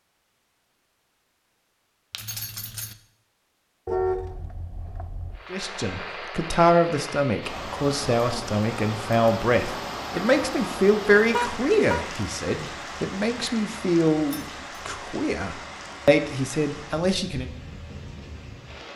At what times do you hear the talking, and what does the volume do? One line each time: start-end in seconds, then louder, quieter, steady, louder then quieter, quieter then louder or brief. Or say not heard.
5.5-17.5 steady.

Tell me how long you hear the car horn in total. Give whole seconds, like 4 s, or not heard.
2 s.